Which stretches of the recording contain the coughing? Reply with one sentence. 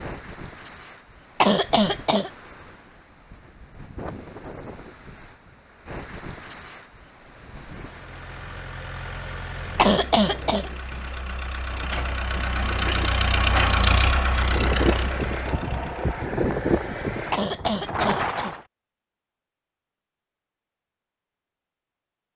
You can hear the coughing from 1.4 to 2.3 s, from 9.8 to 10.7 s and from 17.3 to 18.6 s.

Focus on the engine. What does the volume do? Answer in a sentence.
The loudness of the engine goes up, then down.